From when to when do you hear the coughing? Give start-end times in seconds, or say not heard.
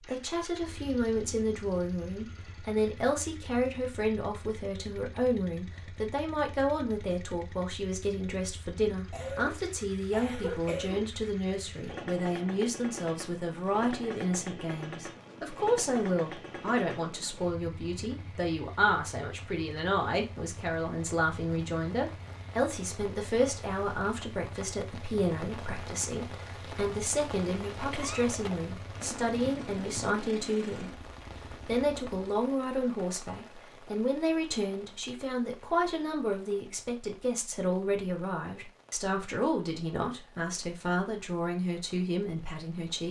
9.1-11.1, 27.9-28.5.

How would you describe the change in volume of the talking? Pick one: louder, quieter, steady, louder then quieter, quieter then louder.
steady.